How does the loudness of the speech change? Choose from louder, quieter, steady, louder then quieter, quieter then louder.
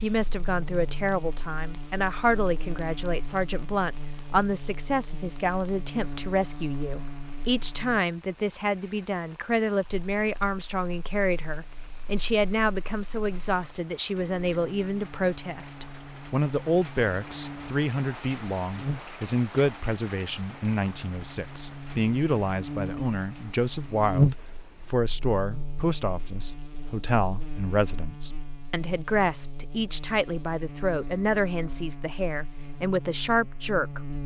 steady.